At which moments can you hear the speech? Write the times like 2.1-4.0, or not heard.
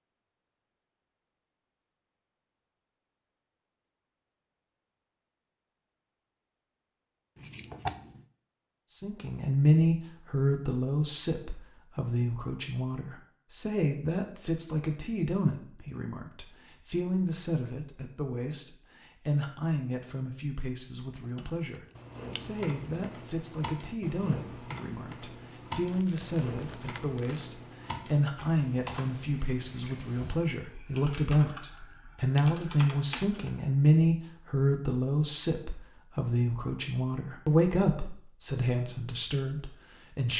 8.9-40.3.